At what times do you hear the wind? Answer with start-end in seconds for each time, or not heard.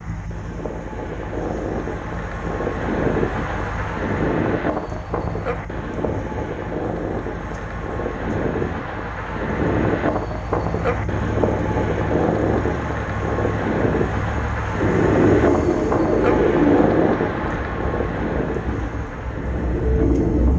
0.0-20.4.